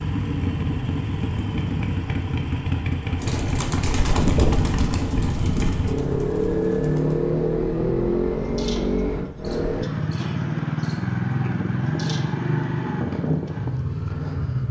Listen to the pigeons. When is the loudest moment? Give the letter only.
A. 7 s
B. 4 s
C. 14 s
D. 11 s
B.